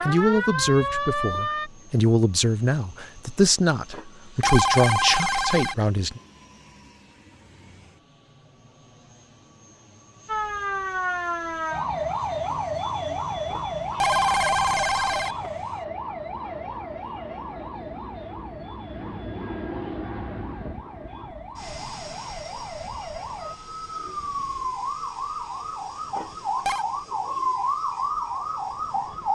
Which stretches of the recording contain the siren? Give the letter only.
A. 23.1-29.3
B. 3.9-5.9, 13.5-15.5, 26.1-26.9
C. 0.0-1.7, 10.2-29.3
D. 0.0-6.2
C.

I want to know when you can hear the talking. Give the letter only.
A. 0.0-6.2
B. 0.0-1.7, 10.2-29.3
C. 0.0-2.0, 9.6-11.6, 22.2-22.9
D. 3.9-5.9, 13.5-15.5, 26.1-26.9
A.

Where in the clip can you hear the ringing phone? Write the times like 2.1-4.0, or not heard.
3.9-5.9, 13.5-15.5, 26.1-26.9.